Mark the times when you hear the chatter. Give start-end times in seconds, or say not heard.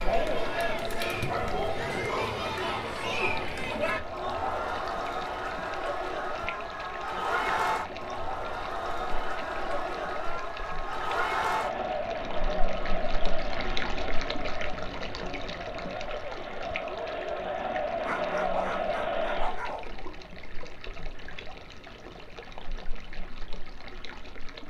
0.0-19.6.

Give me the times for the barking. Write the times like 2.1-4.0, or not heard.
1.3-2.5, 18.0-19.9.